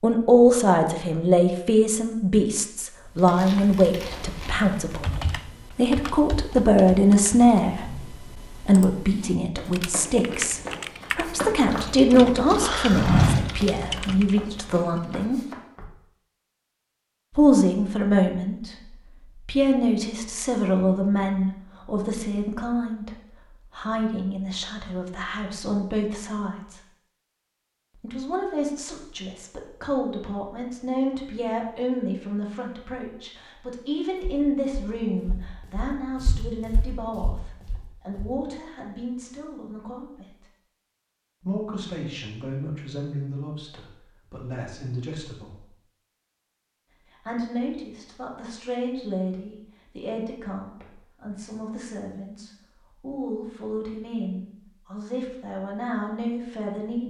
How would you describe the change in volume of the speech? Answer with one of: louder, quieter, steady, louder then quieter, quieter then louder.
quieter.